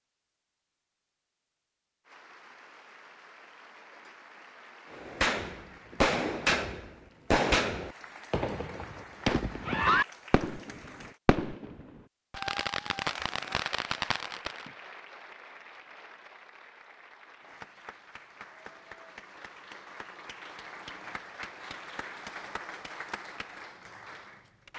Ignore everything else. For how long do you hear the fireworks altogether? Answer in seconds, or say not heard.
10 s.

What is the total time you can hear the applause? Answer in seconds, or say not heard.
21 s.